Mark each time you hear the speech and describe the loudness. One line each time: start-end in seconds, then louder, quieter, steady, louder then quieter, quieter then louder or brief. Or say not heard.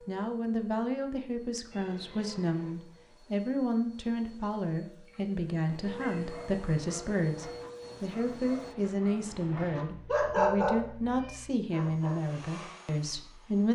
0.1-13.7 steady.